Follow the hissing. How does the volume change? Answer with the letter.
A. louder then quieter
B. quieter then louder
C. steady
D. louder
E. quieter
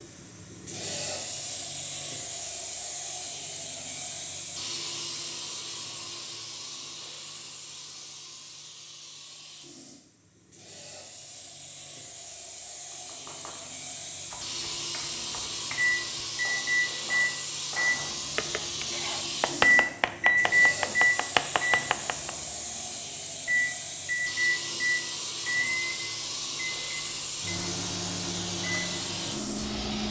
B.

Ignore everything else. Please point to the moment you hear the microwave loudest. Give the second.
21 s.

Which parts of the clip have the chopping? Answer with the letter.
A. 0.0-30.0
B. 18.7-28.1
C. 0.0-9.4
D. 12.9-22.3
D.